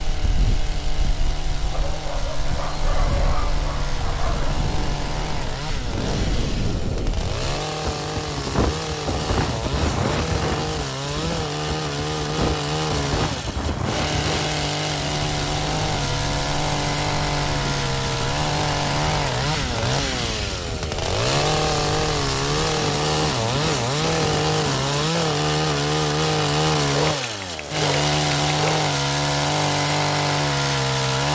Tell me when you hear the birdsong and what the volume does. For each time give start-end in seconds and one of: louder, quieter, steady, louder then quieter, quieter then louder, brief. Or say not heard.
not heard.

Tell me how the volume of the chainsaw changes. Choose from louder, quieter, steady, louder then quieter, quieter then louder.
louder.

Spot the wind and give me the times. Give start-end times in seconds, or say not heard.
0.0-25.1.